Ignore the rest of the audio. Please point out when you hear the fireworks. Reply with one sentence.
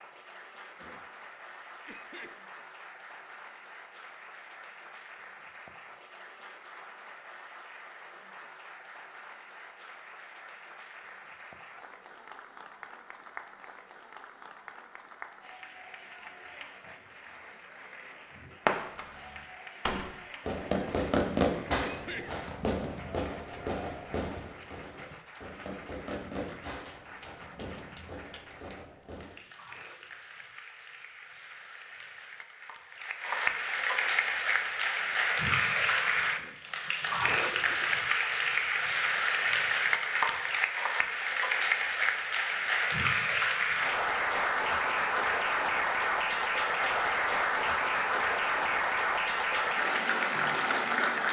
The fireworks can be heard from 18.6 to 29.4 s.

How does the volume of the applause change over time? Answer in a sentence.
The volume of the applause goes up.